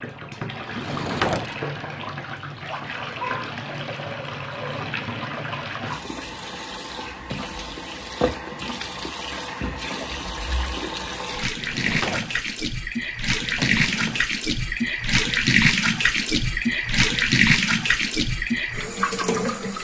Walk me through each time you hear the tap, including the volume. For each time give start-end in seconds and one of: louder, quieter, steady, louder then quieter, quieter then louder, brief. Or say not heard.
0.0-19.8 louder.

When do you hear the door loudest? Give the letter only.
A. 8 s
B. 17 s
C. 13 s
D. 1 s
D.